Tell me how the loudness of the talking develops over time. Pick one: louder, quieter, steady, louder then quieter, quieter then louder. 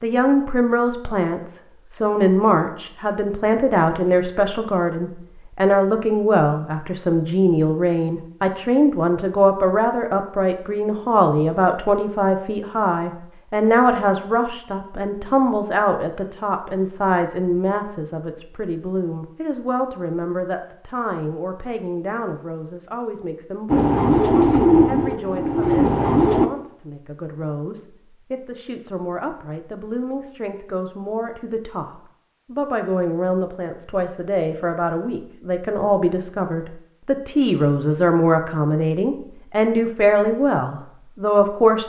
quieter then louder.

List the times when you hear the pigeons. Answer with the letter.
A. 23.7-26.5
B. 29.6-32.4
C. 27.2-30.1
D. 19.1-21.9
A.